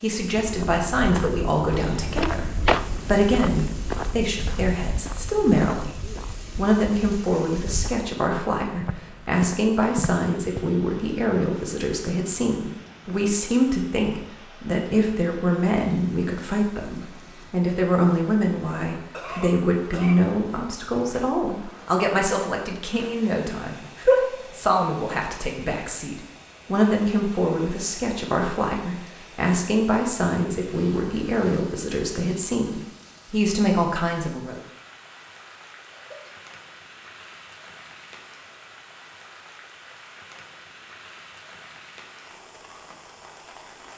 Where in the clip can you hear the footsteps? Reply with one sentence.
The footsteps can be heard from 0.2 to 10.7 s.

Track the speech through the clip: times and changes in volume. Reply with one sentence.
You can hear the speech from 0.0 to 34.6 s, at a steady volume.